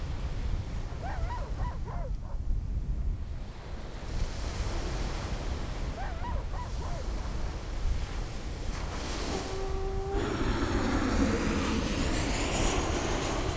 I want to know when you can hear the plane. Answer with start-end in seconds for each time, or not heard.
10.1-13.5.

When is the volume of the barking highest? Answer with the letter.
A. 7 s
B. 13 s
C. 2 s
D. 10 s
D.